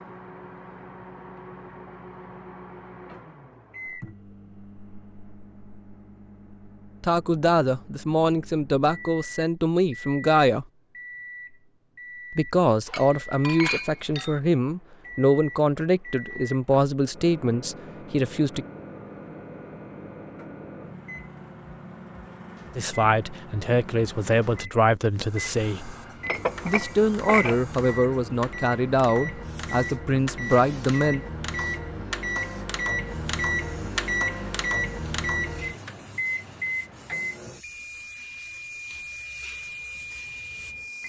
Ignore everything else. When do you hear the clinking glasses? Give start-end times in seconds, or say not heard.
12.8-14.4, 26.2-27.6.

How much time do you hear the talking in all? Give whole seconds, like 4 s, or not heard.
18 s.